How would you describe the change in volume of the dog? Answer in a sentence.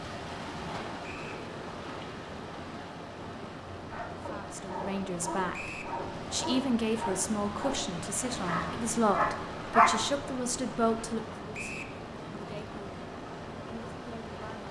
The loudness of the dog goes up.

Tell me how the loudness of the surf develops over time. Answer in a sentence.
The loudness of the surf stays about the same.